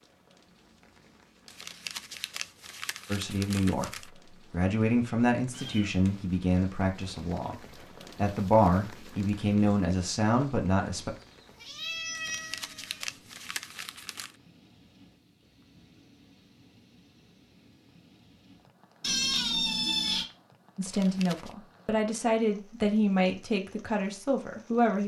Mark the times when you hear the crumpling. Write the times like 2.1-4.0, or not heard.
1.4-4.1, 12.2-14.3, 20.8-21.6.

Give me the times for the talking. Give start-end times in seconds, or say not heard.
3.0-7.5, 8.2-11.1, 20.8-25.0.